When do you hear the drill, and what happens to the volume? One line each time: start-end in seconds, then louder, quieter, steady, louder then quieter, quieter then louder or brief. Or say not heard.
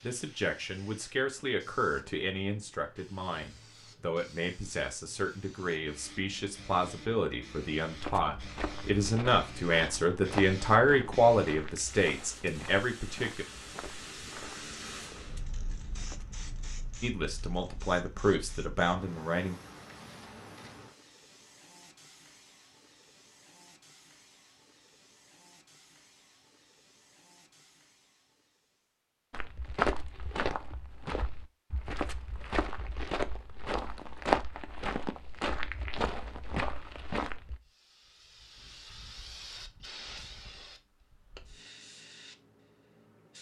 not heard.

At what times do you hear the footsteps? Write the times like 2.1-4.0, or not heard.
8.0-16.2, 29.3-37.6.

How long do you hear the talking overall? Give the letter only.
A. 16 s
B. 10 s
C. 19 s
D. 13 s
A.